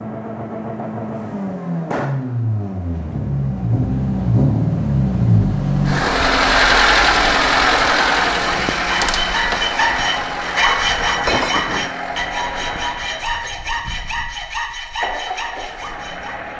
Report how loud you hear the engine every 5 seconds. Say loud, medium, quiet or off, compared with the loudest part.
medium, loud, medium, quiet.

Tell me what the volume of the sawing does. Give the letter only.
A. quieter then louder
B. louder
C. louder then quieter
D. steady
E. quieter
E.